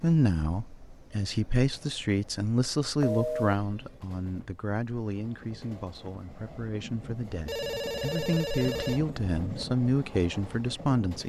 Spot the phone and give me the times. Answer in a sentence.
The phone can be heard from 3.0 to 3.5 s and from 7.2 to 9.0 s.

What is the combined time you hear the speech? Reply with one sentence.
You can hear the speech for 11 seconds altogether.